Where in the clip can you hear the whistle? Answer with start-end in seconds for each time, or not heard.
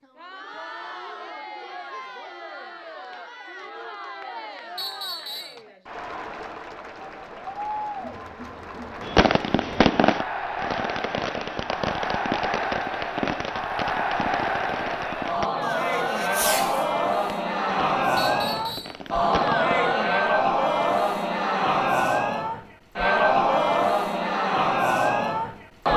4.8-5.6, 18.1-19.0.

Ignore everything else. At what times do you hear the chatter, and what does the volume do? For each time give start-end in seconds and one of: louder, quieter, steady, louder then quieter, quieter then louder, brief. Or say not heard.
0.0-25.9 louder.